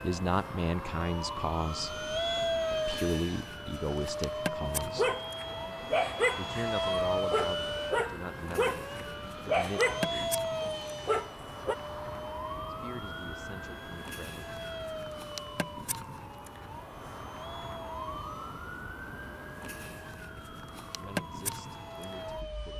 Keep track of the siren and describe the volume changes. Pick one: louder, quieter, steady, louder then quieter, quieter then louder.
steady.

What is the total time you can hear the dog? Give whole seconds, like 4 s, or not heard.
7 s.